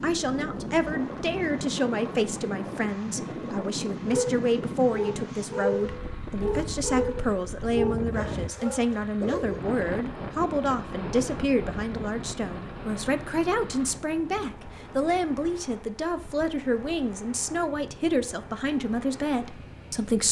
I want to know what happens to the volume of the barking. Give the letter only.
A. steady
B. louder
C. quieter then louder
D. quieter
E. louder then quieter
D.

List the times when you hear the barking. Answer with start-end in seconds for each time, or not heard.
4.0-9.6.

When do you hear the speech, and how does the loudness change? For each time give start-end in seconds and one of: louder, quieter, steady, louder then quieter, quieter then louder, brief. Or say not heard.
0.0-20.2 steady.